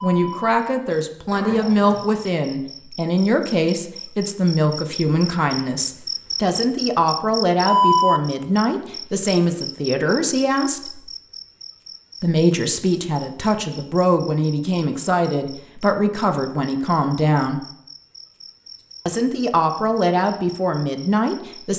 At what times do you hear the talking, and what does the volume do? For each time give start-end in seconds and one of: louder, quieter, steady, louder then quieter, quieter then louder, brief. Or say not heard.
0.0-11.0 steady
12.2-17.6 steady
19.1-21.7 brief.